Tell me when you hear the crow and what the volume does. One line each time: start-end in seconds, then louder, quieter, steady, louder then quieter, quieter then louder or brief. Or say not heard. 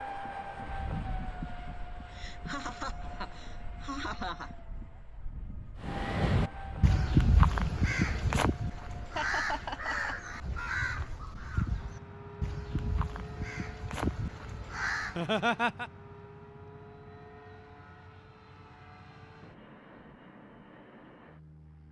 5.8-15.2 quieter.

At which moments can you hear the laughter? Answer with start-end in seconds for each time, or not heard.
2.1-4.5, 9.2-10.2, 15.0-15.9.